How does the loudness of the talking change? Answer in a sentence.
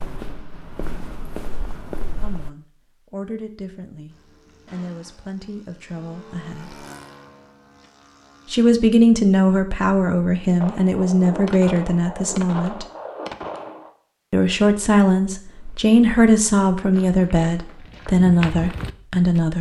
The volume of the talking goes up.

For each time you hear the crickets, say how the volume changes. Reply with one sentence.
The crickets can't be heard in this clip.